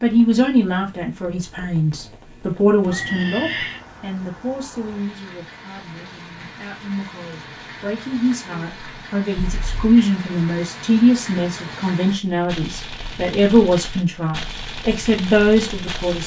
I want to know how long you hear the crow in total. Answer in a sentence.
You can't hear the crow here.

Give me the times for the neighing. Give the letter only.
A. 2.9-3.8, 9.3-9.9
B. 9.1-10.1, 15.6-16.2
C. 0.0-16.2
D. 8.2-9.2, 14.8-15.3
A.